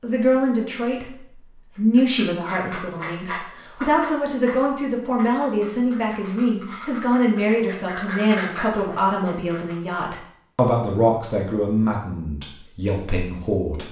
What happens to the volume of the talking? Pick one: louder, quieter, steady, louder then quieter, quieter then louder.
steady.